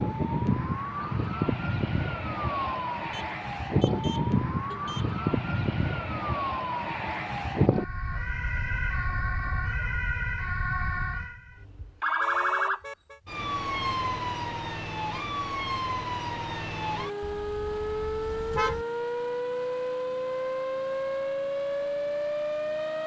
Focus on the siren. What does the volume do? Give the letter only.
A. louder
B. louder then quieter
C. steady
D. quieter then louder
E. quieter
C.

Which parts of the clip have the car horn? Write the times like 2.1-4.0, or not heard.
3.1-5.2, 12.2-13.2, 17.2-18.9.